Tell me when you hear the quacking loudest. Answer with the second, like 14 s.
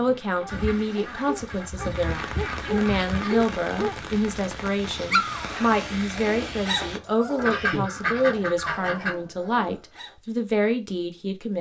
8 s.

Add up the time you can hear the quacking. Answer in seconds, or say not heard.
5 s.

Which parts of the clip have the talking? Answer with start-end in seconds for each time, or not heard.
0.0-11.5.